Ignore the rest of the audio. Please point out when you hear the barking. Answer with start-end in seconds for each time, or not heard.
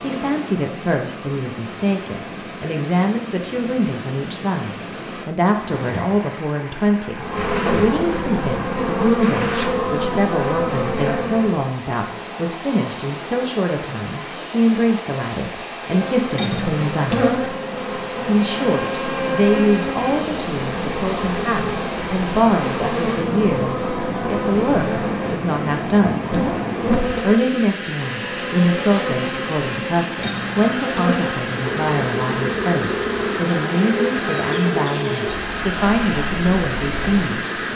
not heard.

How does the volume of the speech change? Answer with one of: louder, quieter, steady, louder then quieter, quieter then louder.
steady.